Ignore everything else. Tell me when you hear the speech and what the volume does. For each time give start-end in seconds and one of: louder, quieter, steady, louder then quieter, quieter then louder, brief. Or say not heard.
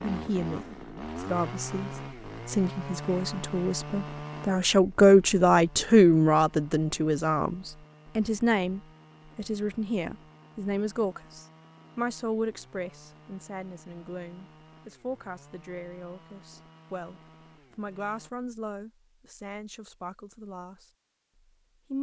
0.0-20.9 louder then quieter.